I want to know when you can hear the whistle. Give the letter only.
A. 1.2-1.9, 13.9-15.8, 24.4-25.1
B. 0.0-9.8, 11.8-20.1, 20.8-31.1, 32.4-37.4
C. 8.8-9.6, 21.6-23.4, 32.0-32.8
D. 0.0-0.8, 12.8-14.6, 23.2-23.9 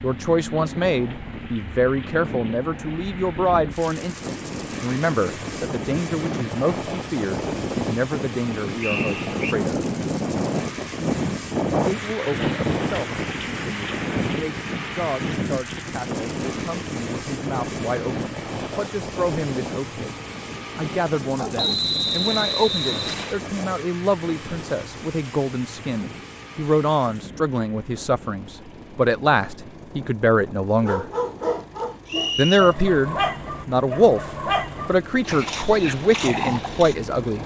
C.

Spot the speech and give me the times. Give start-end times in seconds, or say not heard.
0.0-9.8, 11.8-20.1, 20.8-31.1, 32.4-37.4.